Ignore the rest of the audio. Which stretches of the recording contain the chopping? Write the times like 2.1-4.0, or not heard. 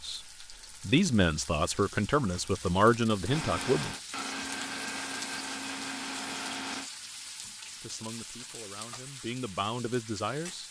not heard.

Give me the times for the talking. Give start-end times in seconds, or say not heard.
0.0-4.0, 7.8-10.6.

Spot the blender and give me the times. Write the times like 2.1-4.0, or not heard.
3.2-6.9.